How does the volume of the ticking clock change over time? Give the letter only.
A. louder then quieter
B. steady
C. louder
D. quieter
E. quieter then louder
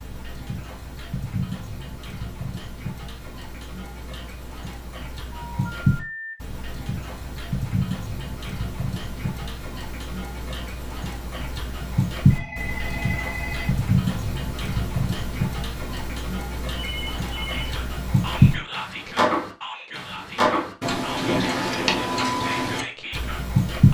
C.